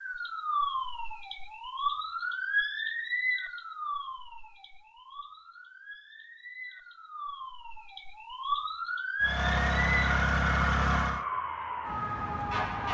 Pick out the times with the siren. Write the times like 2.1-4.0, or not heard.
0.0-12.8.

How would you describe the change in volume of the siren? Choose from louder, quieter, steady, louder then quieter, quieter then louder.
quieter then louder.